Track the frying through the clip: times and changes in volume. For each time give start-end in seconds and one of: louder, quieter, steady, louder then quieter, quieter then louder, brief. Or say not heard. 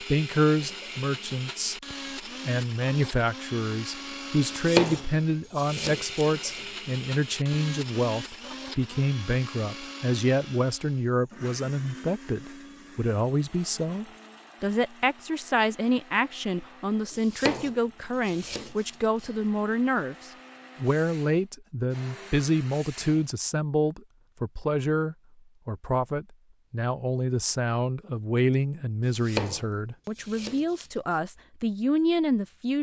not heard.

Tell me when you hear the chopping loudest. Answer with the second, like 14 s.
5 s.